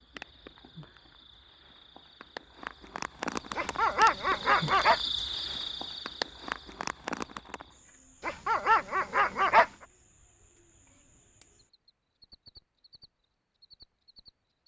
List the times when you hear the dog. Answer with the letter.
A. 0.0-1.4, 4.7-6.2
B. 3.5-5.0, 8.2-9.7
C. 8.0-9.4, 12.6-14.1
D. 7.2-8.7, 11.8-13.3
B.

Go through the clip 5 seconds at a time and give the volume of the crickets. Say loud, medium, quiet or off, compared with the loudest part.
loud, loud, quiet.